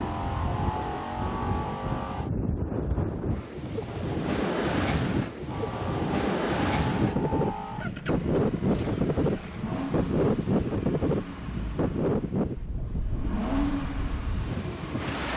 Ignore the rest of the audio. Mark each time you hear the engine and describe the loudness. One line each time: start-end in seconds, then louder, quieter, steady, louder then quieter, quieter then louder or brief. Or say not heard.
0.0-2.3 brief
5.5-15.3 quieter then louder.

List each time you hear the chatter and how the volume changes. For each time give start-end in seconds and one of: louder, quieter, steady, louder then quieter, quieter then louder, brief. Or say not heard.
not heard.